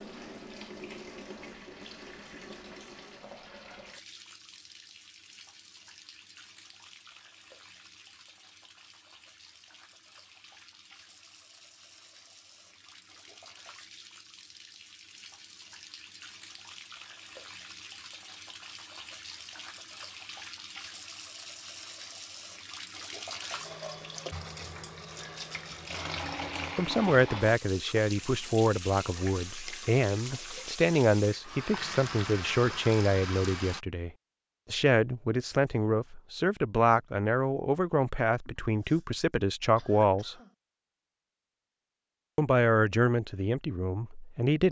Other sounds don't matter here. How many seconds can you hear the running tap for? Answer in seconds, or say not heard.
34 s.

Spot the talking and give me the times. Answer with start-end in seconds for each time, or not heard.
26.8-34.1, 34.7-40.4, 42.4-44.6.